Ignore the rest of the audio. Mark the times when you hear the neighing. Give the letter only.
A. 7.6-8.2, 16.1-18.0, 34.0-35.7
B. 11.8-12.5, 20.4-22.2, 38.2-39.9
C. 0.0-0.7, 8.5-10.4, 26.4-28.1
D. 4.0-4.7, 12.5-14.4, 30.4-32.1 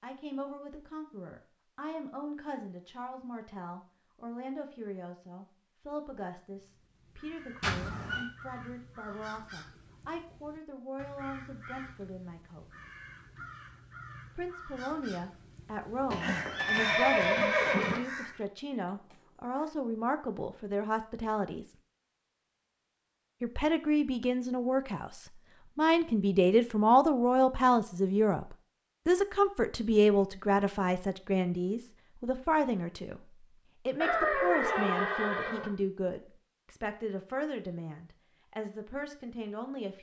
A.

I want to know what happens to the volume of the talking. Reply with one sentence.
The volume of the talking goes up, then down.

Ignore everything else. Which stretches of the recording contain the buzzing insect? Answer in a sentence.
You can't hear the buzzing insect here.